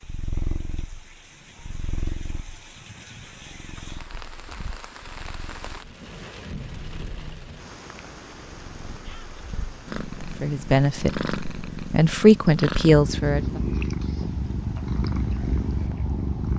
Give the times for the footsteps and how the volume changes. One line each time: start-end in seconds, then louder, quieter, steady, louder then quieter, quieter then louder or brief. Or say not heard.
not heard.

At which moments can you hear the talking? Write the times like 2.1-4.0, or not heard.
10.4-13.6.